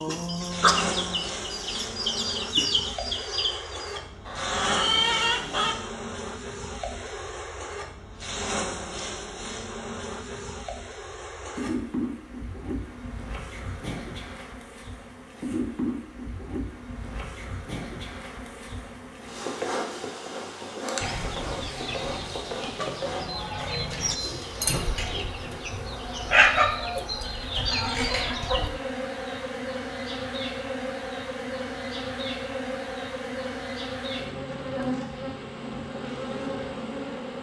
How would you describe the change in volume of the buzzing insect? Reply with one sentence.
The loudness of the buzzing insect stays about the same.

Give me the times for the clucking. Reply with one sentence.
The clucking can be heard from 0.0 to 5.8 s and from 21.0 to 28.7 s.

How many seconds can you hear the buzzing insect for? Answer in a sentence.
The buzzing insect can be heard for 37 seconds in total.